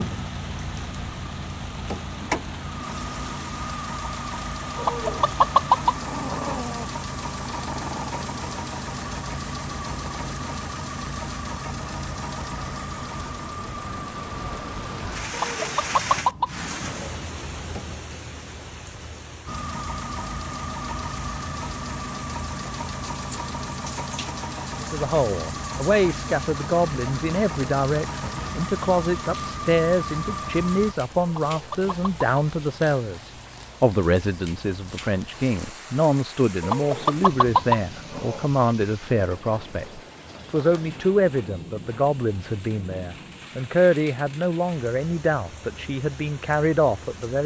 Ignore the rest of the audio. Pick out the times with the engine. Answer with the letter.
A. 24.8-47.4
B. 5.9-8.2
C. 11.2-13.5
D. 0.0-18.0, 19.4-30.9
D.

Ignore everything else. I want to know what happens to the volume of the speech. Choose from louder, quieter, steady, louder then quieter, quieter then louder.
steady.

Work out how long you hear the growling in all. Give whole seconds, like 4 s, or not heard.
2 s.